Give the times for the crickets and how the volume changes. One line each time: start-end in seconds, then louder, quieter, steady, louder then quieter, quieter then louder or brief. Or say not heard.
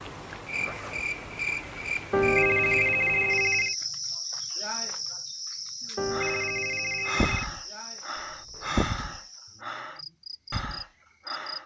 0.0-11.6 quieter.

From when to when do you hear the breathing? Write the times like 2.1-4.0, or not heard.
6.1-11.6.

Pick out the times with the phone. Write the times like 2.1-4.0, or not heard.
2.1-3.8, 6.0-7.5.